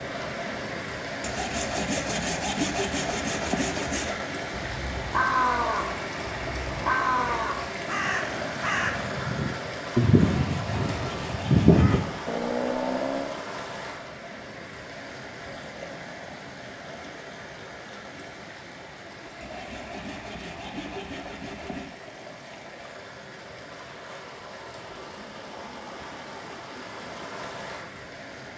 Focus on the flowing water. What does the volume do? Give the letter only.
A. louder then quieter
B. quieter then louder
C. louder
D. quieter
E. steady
D.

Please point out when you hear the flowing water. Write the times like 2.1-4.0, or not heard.
0.0-28.5.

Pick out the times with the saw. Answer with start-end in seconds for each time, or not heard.
1.2-4.2, 10.3-12.1, 19.4-21.9.